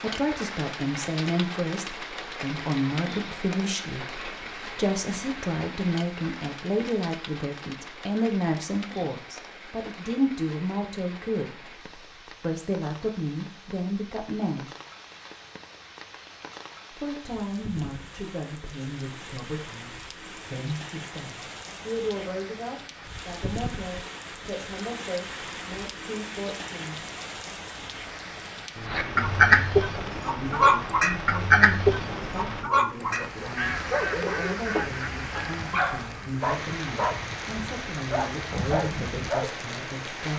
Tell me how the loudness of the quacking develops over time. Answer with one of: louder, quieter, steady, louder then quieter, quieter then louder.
quieter.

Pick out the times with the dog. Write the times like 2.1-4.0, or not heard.
33.1-37.2, 38.1-39.5.